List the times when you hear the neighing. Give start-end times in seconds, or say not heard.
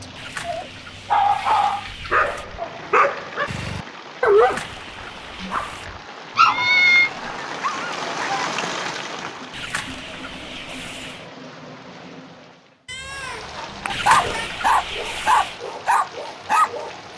not heard.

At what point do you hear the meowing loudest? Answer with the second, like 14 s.
7 s.